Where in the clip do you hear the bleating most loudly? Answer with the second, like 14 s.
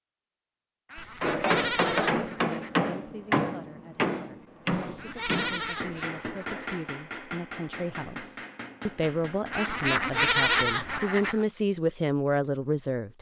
10 s.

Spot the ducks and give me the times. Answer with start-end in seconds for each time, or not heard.
0.8-2.8, 5.0-6.9, 9.5-11.4.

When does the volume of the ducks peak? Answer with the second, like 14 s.
10 s.